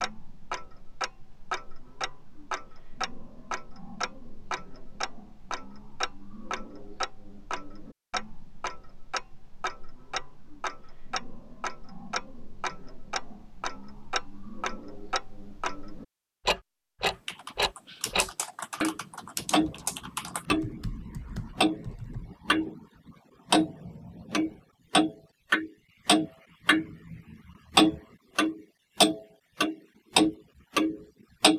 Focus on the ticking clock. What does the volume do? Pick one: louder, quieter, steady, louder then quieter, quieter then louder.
louder.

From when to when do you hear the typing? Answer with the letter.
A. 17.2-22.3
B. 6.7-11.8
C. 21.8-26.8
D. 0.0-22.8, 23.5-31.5
A.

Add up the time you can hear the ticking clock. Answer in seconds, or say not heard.
31 s.